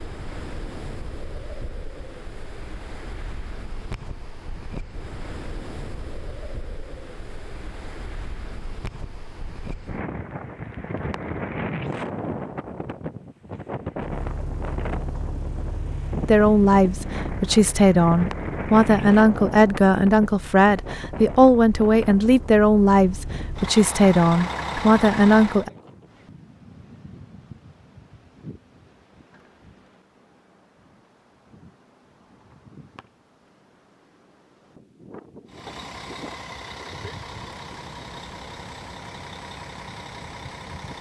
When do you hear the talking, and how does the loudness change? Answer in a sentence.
The talking can be heard from 16.2 to 25.7 s, at a steady volume.